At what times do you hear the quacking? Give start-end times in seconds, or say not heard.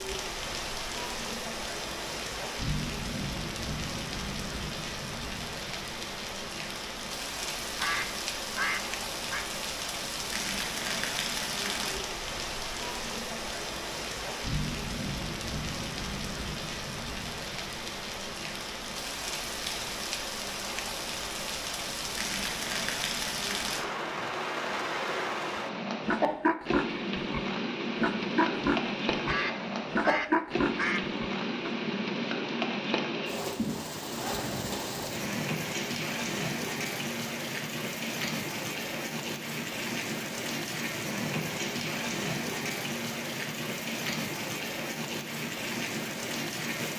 7.8-9.4, 29.2-31.1.